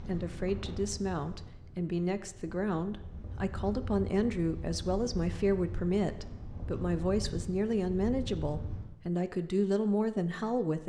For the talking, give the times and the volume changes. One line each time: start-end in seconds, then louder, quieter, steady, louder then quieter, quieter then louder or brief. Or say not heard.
0.1-10.8 steady.